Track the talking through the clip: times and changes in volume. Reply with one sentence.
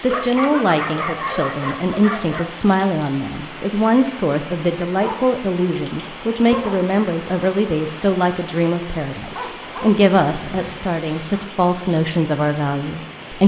The talking can be heard from 0.0 to 13.4 s, at a steady volume.